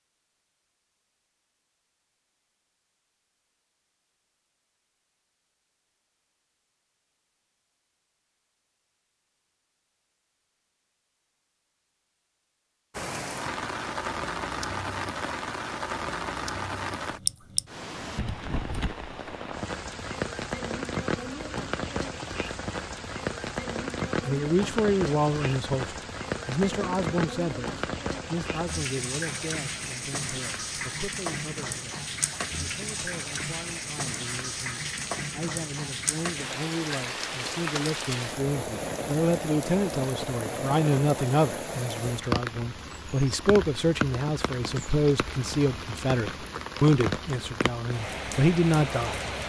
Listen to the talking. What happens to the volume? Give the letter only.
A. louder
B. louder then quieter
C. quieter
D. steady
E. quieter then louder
E.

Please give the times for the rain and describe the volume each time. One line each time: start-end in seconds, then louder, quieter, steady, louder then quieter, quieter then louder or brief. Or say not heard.
12.9-49.4 steady.